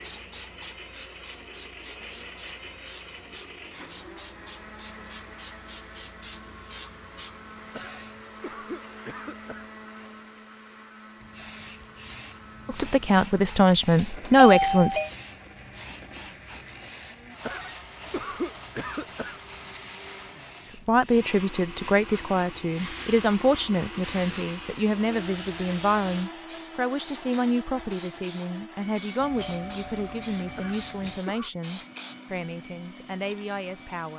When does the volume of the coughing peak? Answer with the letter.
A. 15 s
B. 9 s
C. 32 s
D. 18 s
D.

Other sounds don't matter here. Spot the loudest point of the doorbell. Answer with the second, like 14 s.
15 s.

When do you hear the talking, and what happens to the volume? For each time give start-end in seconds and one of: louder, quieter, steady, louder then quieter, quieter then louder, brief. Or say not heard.
12.7-15.0 brief
20.6-34.1 quieter.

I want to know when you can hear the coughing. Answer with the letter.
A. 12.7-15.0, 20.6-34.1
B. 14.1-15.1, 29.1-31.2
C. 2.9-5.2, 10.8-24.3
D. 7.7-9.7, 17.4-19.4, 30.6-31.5
D.